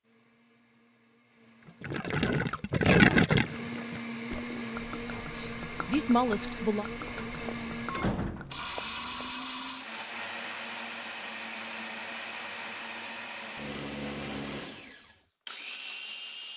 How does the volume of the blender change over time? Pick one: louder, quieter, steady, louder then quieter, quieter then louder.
louder.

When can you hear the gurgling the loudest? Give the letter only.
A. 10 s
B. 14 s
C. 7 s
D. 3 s
D.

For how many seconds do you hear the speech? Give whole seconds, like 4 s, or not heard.
2 s.